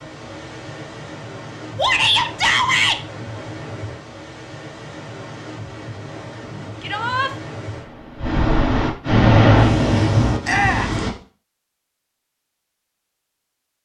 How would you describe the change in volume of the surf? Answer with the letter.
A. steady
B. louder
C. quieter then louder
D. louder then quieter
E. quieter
B.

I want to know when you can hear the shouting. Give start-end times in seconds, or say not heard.
1.8-3.0, 6.8-7.3, 10.4-10.9.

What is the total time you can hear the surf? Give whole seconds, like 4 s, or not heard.
11 s.